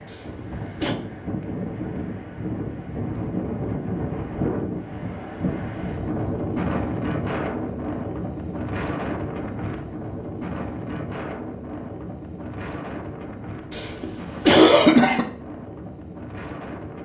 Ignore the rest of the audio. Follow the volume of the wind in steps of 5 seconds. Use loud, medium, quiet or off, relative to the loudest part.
loud, loud, medium, medium.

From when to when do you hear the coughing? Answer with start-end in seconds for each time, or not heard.
0.1-0.9, 13.7-15.2.